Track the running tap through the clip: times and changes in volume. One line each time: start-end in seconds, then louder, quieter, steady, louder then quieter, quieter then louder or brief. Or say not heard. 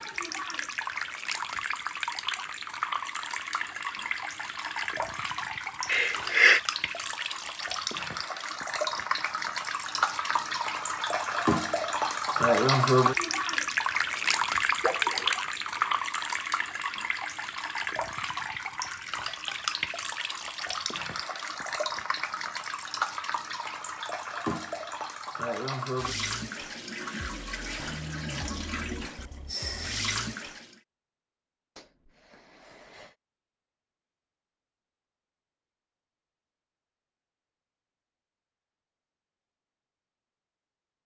0.0-30.8 louder then quieter.